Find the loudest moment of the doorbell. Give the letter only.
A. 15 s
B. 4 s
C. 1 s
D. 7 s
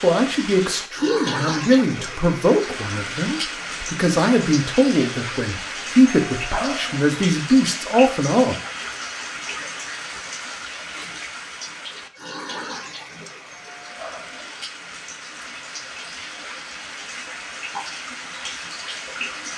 D.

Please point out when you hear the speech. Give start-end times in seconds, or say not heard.
0.0-8.6.